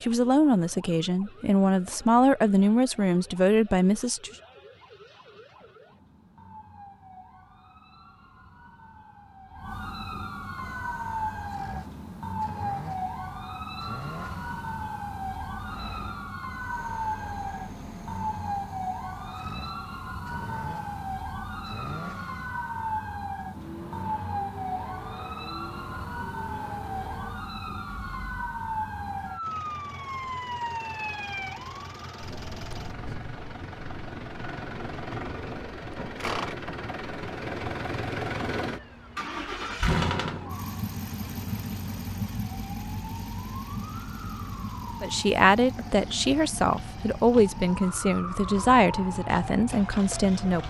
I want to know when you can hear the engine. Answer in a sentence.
The engine can be heard from 10.6 to 50.6 s.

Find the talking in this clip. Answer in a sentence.
You can hear the talking from 0.0 to 4.3 s and from 45.0 to 50.6 s.